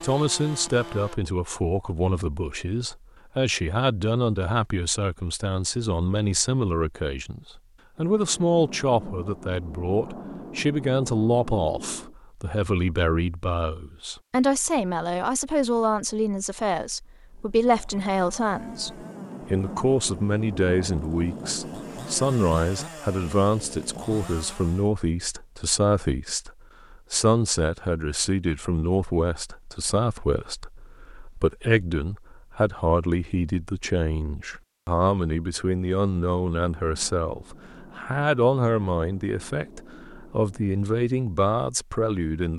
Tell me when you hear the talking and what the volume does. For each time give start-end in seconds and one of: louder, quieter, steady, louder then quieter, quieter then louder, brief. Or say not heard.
0.0-42.5 steady.